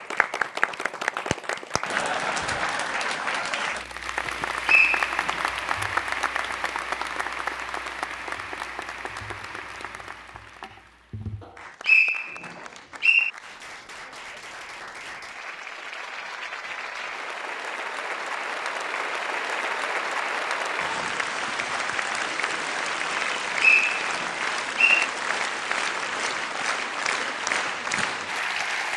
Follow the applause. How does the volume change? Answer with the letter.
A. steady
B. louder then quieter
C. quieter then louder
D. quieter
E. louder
C.